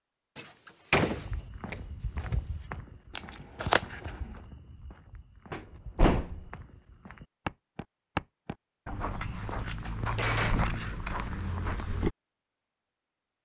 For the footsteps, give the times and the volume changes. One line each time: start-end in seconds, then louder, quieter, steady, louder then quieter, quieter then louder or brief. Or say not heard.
1.1-12.1 quieter then louder.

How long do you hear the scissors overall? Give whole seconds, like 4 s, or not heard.
3 s.